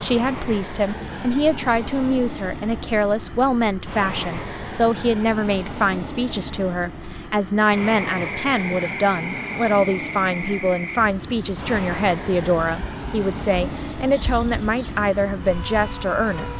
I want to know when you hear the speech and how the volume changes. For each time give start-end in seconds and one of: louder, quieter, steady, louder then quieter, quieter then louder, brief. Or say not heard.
0.0-16.5 steady.